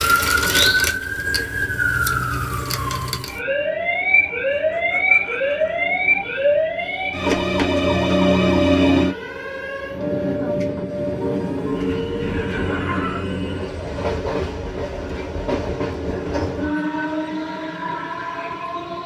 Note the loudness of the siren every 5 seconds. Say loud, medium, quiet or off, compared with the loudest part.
loud, loud, quiet, off.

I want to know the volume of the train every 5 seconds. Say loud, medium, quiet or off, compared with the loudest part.
quiet, quiet, loud, loud.